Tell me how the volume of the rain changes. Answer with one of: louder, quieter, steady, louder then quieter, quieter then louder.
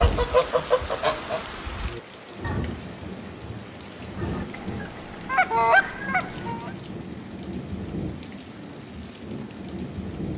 steady.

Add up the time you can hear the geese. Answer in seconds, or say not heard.
5 s.